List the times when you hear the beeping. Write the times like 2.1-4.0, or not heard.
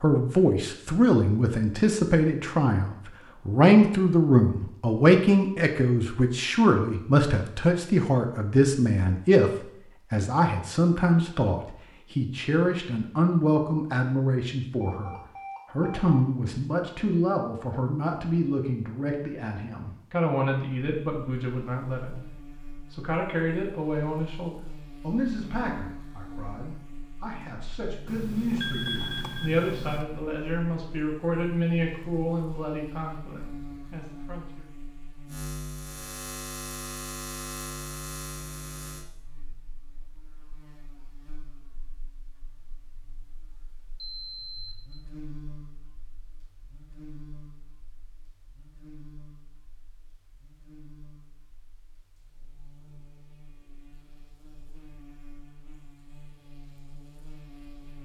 14.8-16.2, 28.1-30.1, 44.0-45.0.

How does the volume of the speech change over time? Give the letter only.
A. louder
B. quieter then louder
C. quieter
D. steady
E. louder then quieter
C.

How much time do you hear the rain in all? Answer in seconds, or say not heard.
not heard.